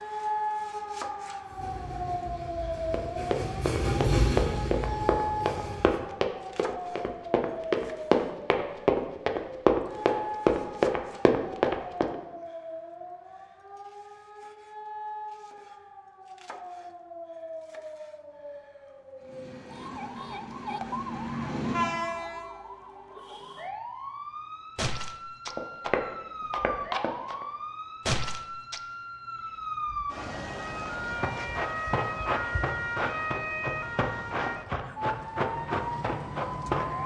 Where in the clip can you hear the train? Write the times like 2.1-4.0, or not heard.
1.4-6.1, 19.1-22.5.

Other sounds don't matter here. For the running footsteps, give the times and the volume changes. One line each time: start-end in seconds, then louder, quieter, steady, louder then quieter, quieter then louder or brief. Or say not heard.
2.9-12.2 louder
25.4-27.4 brief
31.1-37.0 steady.